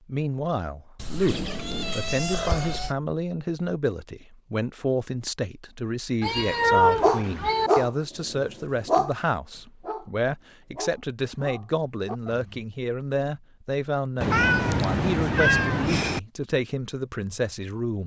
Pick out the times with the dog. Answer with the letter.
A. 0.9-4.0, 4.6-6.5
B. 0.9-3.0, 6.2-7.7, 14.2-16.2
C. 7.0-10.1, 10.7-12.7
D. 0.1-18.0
C.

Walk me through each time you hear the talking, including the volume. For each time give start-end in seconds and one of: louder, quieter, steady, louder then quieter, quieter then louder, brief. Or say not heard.
0.1-18.0 steady.